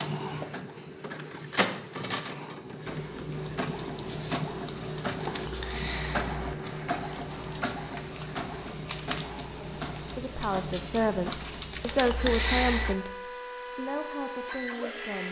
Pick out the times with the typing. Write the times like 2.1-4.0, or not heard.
3.0-12.9.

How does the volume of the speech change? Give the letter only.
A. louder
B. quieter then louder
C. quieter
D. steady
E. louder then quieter
C.